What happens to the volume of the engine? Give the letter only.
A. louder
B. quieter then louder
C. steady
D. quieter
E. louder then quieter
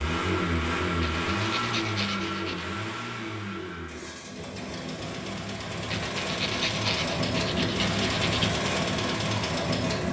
B.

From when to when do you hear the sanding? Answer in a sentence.
You can hear the sanding from 1.0 to 2.6 s and from 5.9 to 8.6 s.